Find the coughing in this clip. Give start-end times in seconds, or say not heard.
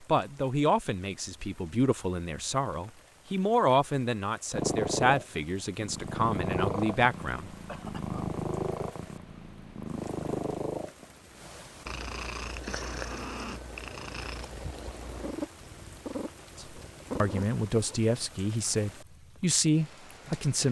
7.7-8.3.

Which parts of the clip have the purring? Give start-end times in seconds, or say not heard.
4.5-18.1.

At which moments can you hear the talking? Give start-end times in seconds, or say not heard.
0.1-7.5, 16.6-20.6.